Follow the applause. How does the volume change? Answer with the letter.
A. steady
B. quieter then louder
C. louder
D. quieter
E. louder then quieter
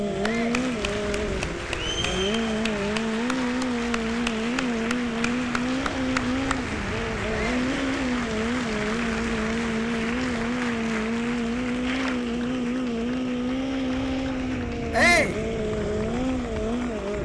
D.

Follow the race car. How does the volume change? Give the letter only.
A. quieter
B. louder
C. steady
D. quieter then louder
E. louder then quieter
C.